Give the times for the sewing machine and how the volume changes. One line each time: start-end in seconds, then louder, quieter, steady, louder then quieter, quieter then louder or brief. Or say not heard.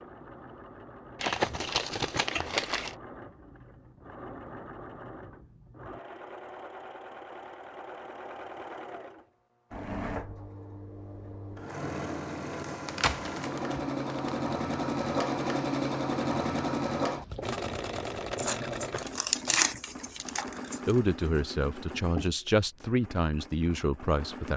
0.0-24.5 louder then quieter.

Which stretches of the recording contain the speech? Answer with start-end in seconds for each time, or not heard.
20.9-24.5.